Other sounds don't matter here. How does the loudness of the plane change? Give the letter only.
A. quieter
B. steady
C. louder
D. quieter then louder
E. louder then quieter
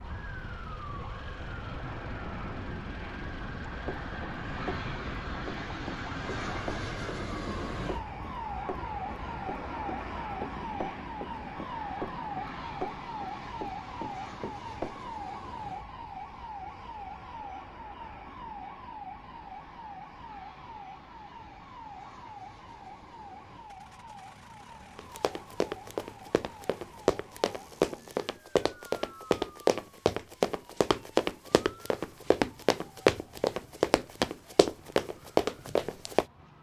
A.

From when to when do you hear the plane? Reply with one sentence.
The plane can be heard from 0.0 to 28.4 s.